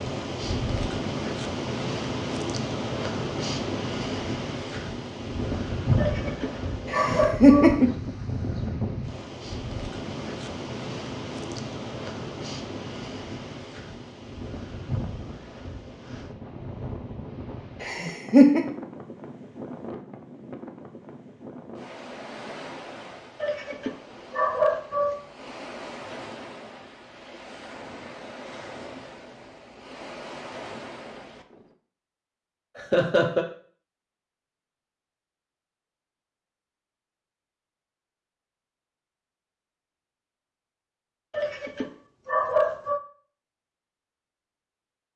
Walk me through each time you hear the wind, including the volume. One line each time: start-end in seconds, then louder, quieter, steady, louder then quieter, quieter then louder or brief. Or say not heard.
0.0-31.8 quieter.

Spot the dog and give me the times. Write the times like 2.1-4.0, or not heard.
6.0-7.8, 23.4-25.1, 41.3-43.0.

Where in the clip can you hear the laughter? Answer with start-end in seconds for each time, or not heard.
6.9-7.9, 17.8-18.6, 32.8-33.5.